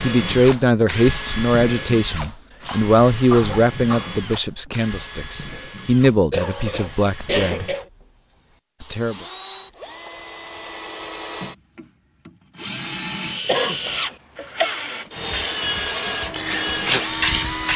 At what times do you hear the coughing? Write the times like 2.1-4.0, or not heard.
2.6-4.2, 6.3-7.8, 13.4-14.7.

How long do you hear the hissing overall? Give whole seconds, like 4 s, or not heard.
3 s.